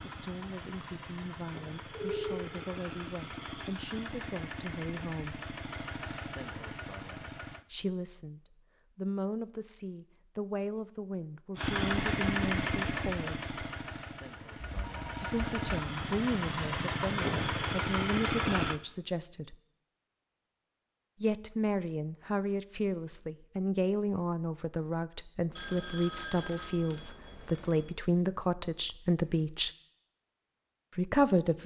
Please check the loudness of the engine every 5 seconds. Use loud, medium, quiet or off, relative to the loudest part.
medium, medium, loud, loud, off, off, off.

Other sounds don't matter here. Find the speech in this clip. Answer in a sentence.
You can hear the speech from 0.0 to 5.3 s, from 7.7 to 13.7 s, from 15.2 to 19.6 s, from 21.2 to 29.7 s and from 30.9 to 31.6 s.